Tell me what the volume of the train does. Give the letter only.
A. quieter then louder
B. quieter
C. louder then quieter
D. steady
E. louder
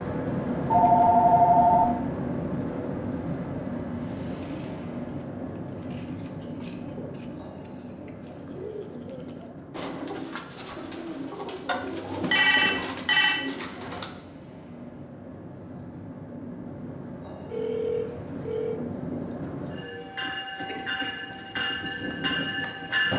A.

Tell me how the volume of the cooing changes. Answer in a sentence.
The loudness of the cooing goes up.